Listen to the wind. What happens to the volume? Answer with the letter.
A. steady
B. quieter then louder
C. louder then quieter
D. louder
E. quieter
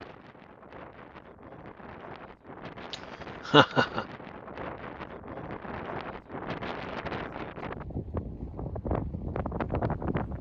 D.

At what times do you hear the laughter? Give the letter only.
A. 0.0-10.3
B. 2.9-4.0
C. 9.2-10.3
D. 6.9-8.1
B.